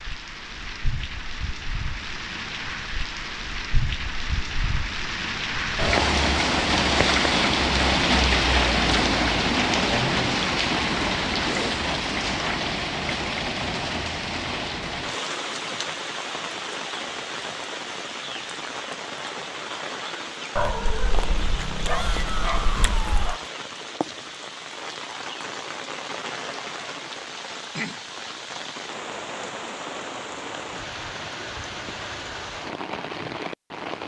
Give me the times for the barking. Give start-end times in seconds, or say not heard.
20.6-23.4.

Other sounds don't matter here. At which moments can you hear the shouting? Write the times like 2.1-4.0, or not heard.
21.9-23.4.